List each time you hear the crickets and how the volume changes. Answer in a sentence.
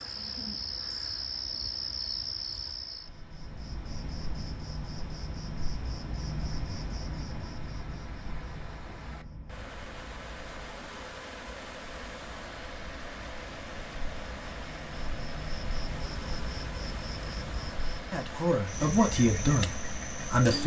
You can hear the crickets from 0.0 to 20.6 s, getting quieter then louder.